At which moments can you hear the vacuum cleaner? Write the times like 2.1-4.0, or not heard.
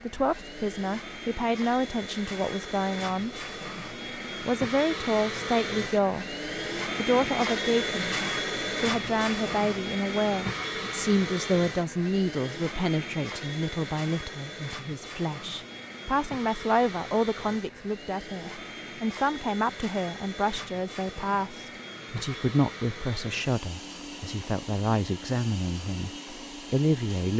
0.0-27.3.